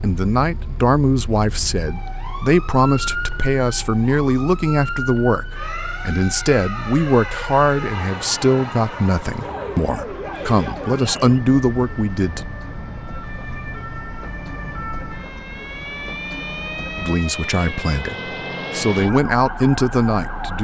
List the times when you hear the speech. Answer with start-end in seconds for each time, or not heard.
0.0-12.4, 16.9-20.5.